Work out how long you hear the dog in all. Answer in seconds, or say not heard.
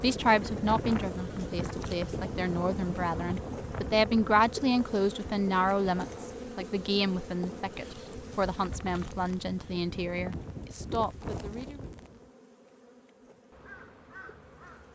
not heard.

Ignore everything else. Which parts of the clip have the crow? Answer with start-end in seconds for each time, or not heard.
13.5-14.9.